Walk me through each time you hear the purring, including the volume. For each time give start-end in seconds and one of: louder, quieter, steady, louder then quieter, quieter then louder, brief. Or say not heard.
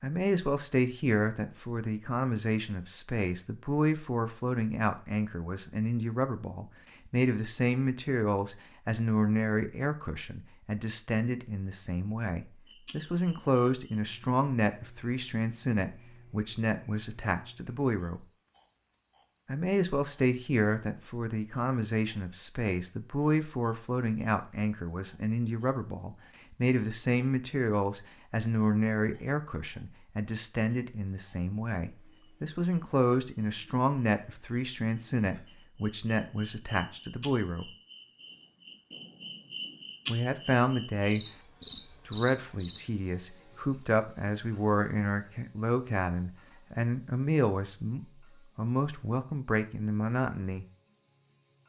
not heard.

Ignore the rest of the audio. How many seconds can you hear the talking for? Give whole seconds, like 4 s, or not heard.
47 s.